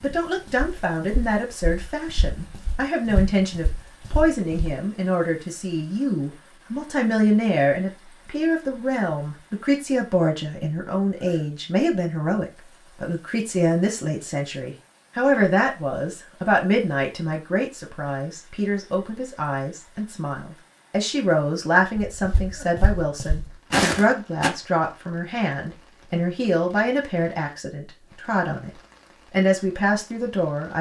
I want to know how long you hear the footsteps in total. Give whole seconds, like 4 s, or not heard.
7 s.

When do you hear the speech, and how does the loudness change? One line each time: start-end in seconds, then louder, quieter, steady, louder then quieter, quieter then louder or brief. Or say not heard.
0.0-28.7 steady
29.3-30.7 brief.